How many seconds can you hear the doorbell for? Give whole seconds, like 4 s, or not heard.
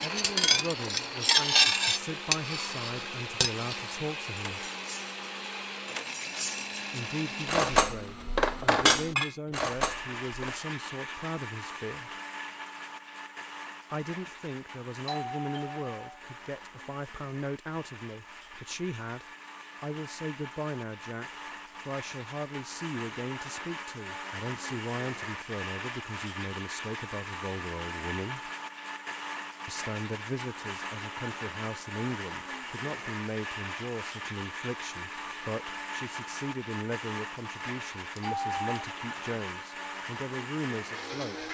2 s.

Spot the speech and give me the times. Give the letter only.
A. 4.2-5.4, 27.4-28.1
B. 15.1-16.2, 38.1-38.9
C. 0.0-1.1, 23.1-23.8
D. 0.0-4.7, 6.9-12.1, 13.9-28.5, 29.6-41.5
D.